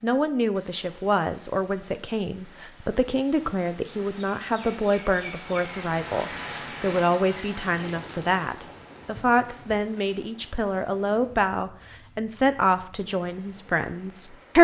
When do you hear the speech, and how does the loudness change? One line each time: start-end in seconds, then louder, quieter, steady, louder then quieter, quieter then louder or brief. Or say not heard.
0.0-14.5 steady.